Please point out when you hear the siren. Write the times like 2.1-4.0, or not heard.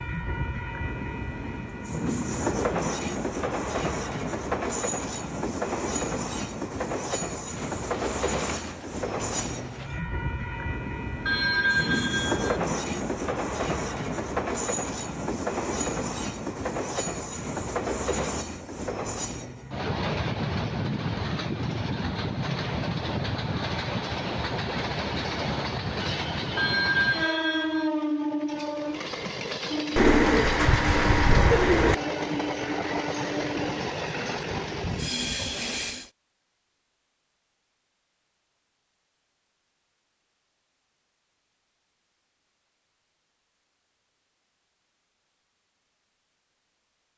not heard.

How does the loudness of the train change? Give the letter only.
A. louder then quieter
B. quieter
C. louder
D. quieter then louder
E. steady
E.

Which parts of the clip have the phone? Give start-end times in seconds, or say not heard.
11.2-12.6, 26.6-27.9.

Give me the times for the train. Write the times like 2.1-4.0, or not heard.
0.0-36.1.